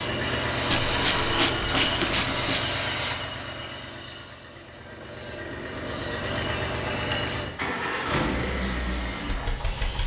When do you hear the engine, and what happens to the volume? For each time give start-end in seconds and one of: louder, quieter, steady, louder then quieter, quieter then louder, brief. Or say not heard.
0.0-10.0 quieter then louder.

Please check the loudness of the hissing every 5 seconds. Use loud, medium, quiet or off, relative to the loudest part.
loud, medium.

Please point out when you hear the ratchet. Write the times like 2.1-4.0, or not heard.
0.7-2.6.